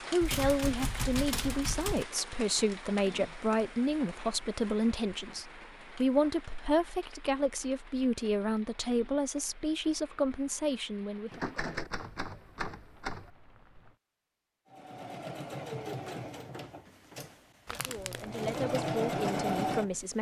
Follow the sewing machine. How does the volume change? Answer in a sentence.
The volume of the sewing machine goes down, then up.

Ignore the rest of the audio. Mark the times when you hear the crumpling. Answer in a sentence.
The crumpling can be heard from 17.6 to 18.6 s.